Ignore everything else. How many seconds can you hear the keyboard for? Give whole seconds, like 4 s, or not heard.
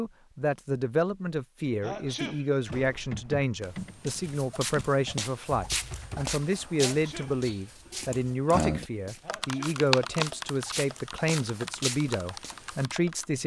10 s.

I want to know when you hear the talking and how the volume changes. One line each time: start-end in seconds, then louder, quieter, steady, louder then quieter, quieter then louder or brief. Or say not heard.
0.0-13.4 steady.